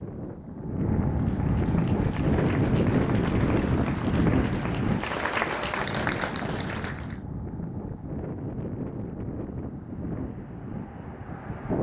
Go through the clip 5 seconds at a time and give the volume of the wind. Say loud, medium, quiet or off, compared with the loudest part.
loud, medium, medium.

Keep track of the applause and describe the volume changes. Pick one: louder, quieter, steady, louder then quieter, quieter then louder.
louder.